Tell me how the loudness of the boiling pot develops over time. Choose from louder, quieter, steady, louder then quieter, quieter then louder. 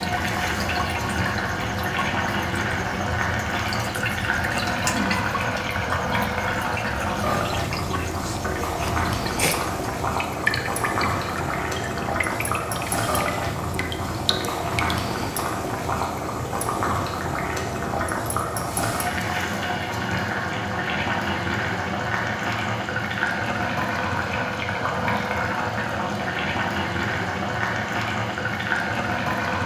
steady.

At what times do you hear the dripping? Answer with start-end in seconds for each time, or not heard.
0.0-15.0.